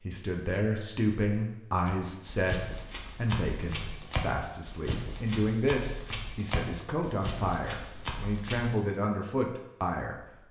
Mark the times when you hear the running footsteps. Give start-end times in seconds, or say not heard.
1.9-8.8.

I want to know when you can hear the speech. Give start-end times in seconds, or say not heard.
0.0-10.2.